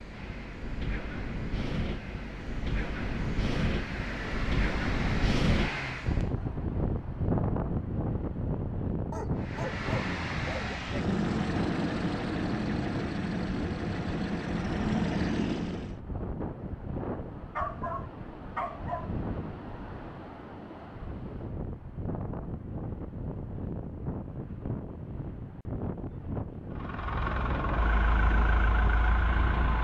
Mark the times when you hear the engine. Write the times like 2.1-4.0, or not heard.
0.0-6.3, 9.3-16.0, 26.7-29.7.